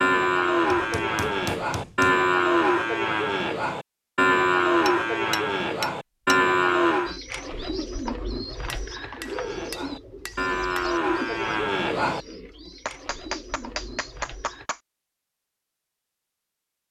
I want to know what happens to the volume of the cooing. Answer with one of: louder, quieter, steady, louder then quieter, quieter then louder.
quieter.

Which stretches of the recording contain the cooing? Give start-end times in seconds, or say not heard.
7.0-14.7.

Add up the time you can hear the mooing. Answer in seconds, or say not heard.
10 s.